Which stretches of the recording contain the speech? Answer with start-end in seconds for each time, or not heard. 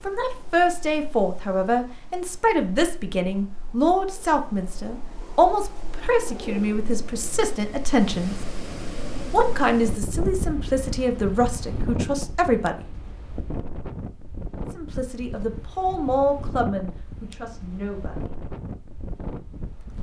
0.0-8.3, 9.3-12.8, 14.8-18.3.